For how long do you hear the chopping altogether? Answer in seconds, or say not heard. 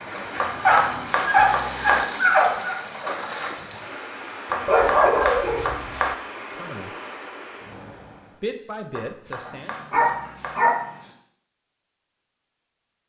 5 s.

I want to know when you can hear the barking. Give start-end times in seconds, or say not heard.
0.5-2.8, 4.7-5.9, 9.4-11.2.